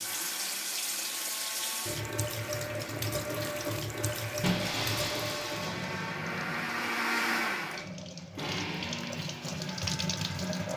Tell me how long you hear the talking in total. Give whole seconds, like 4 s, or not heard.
not heard.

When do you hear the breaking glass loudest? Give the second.
5 s.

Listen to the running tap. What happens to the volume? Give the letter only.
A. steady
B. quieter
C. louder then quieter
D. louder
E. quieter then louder
E.